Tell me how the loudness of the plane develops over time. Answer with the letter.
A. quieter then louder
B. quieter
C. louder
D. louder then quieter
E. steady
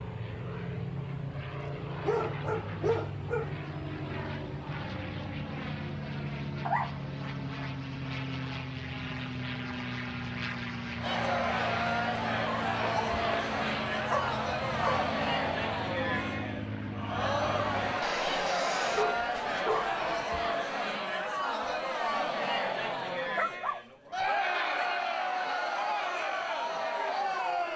E.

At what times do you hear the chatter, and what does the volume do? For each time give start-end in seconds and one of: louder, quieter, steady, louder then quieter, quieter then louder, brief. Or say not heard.
11.0-27.7 steady.